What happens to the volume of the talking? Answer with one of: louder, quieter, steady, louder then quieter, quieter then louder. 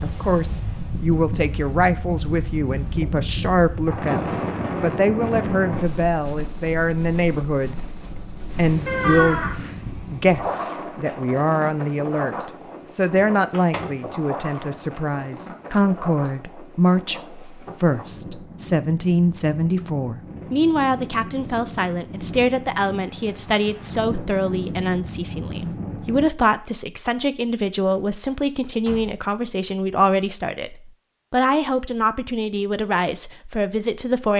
steady.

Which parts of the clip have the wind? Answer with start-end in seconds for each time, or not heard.
0.0-26.2.